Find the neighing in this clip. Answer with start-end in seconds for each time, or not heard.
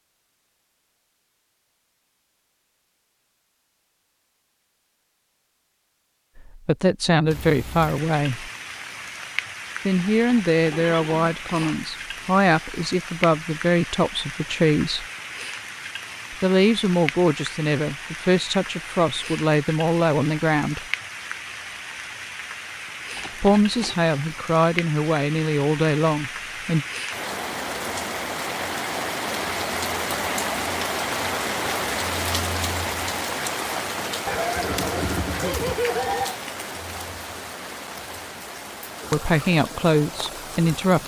10.2-11.8, 23.1-23.9, 34.2-36.4.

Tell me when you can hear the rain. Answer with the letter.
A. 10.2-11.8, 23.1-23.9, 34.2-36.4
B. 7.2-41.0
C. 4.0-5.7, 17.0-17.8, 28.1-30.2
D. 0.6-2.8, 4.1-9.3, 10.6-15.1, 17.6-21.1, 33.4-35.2
B.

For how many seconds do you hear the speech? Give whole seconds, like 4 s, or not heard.
17 s.